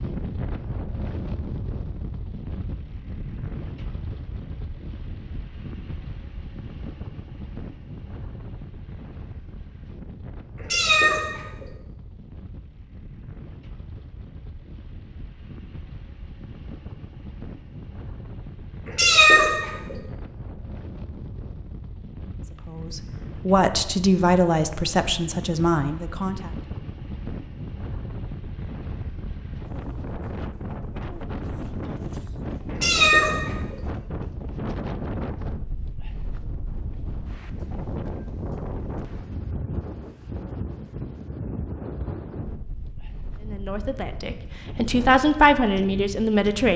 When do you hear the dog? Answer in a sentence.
You can't hear the dog here.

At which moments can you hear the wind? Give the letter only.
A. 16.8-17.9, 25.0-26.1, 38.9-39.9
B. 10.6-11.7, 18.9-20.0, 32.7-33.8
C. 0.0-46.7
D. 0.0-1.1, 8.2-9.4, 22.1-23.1
C.